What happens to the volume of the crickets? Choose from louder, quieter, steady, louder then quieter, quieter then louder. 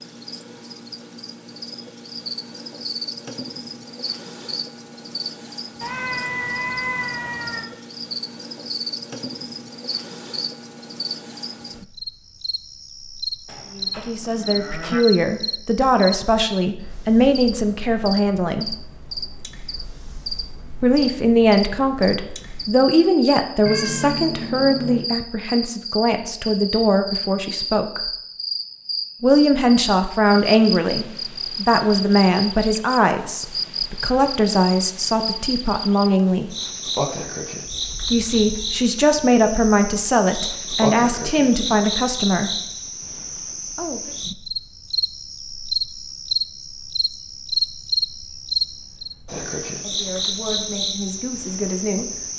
louder.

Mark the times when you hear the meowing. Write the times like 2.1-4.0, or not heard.
5.8-7.7, 23.6-25.1, 37.8-38.9.